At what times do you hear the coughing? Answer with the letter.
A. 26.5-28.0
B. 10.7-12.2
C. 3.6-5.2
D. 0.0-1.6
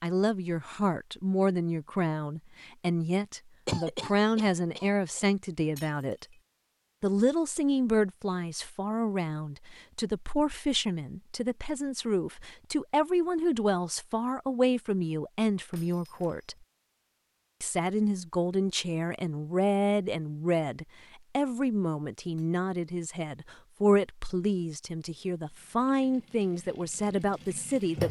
C.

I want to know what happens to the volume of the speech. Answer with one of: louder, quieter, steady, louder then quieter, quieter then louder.
steady.